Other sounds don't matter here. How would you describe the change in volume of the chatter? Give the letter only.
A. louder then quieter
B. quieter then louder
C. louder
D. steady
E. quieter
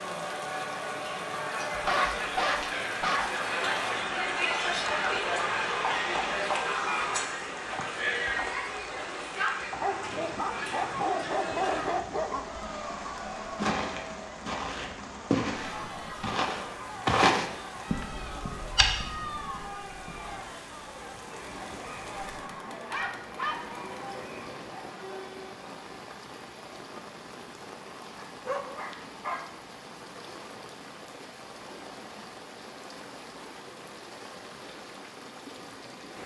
E.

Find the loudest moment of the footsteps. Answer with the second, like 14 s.
17 s.